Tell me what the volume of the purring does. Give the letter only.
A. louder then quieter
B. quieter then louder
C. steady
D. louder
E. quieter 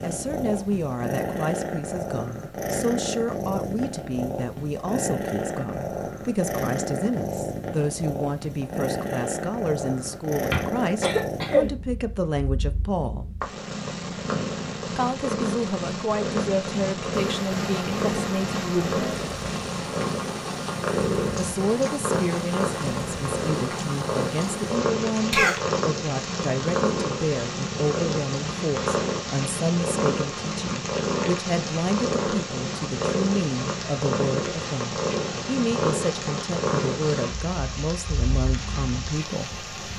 C.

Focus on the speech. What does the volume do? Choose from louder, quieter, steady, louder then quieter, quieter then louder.
steady.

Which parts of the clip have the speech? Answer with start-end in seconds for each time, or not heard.
0.0-13.2, 14.8-19.0, 21.4-39.6.